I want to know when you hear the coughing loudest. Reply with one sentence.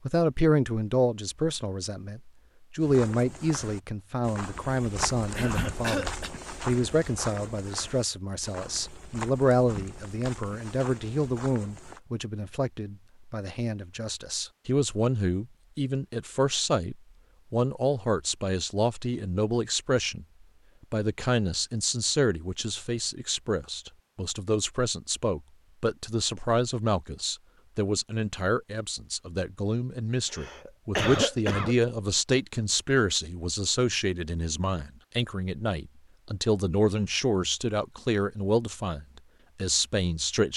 The volume of the coughing peaks at 31 seconds.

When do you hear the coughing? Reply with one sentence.
You can hear the coughing from 5.3 to 6.3 s and from 30.3 to 31.8 s.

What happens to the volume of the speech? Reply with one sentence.
The loudness of the speech stays about the same.